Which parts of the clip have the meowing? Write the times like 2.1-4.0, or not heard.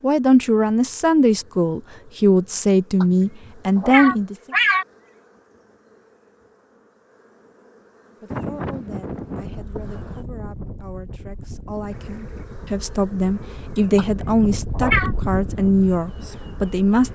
3.0-4.8, 13.9-15.1.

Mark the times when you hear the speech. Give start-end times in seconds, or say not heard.
0.0-4.3, 8.2-17.1.